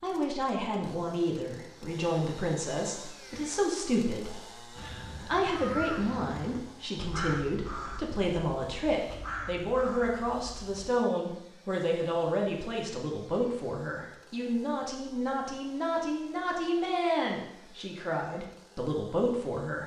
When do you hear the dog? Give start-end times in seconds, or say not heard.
not heard.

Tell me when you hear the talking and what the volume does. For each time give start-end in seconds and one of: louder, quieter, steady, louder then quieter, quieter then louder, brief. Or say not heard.
0.0-19.8 steady.